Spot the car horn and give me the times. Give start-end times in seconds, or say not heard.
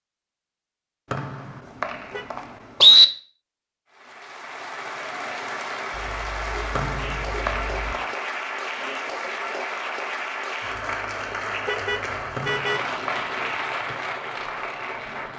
1.6-2.3, 6.0-8.0, 11.6-12.8.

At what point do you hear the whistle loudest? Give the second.
3 s.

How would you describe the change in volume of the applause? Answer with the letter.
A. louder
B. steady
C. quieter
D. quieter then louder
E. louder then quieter
B.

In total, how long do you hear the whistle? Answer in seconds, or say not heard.
4 s.